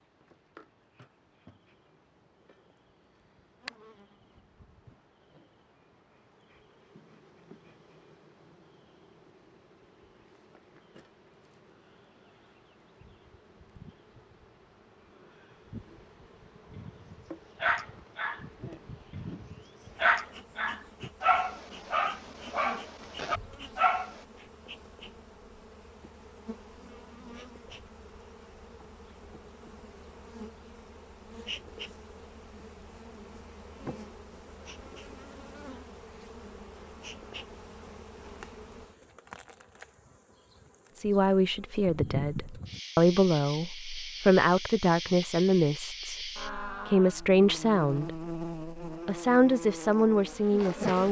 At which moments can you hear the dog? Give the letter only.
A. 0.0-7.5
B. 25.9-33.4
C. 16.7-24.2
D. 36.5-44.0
C.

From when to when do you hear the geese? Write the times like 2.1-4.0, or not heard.
not heard.